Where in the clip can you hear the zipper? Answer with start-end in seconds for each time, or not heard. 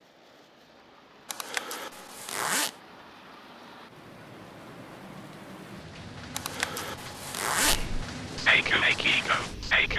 1.2-2.8, 6.3-7.8.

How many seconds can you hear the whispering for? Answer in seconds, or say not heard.
2 s.